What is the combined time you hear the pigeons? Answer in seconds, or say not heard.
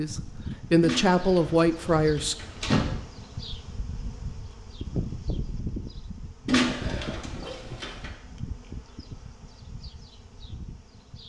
4 s.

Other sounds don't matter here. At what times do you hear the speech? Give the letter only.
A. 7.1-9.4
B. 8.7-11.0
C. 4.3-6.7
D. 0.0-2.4
D.